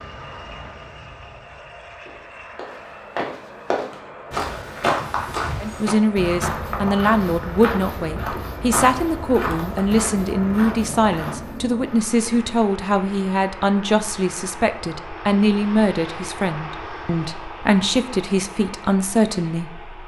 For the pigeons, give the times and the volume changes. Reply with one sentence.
The pigeons can't be heard in this clip.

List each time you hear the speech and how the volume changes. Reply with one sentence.
You can hear the speech from 5.6 to 19.9 s, at a steady volume.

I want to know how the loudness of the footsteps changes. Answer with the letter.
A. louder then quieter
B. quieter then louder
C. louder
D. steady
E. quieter
E.